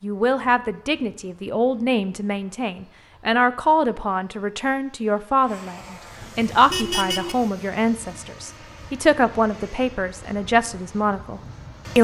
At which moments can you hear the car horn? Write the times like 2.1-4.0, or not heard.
6.7-7.3.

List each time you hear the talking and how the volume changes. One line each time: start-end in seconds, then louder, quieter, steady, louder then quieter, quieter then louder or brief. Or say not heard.
0.0-11.9 steady.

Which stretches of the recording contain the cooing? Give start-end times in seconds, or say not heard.
not heard.